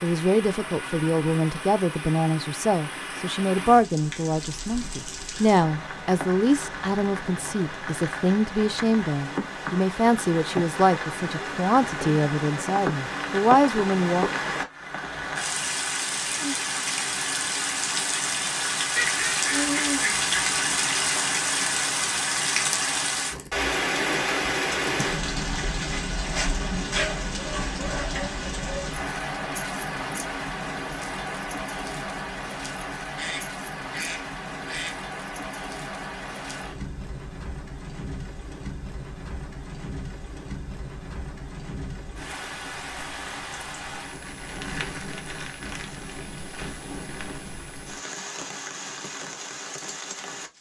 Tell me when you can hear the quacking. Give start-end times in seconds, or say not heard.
18.9-20.6, 33.1-35.0.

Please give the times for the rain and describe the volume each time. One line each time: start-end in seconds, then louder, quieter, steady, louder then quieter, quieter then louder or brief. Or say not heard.
0.0-50.5 louder then quieter.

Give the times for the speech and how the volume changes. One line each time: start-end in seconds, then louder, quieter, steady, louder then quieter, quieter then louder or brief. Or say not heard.
0.0-14.2 steady.